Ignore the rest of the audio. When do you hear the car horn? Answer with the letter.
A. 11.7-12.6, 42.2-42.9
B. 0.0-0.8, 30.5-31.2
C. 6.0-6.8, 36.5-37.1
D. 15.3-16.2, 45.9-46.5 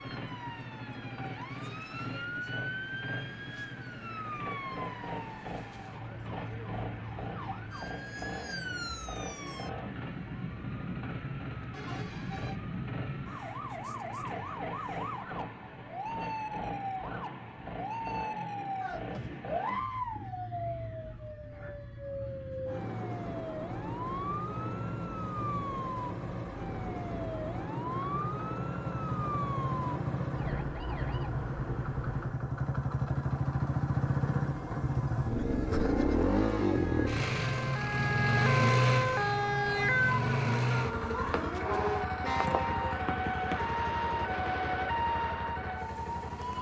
A.